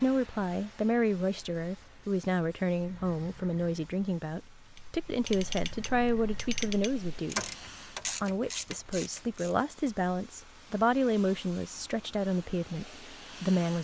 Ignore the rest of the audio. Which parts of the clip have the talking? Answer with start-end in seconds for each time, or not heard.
0.0-7.5, 8.2-13.7.